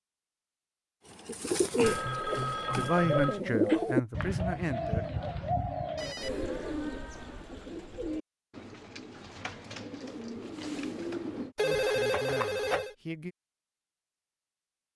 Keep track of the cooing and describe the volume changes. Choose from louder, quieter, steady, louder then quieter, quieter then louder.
quieter.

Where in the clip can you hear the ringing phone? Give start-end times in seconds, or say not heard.
1.8-3.4, 6.0-7.5, 11.6-12.9.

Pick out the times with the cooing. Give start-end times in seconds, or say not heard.
1.1-11.6.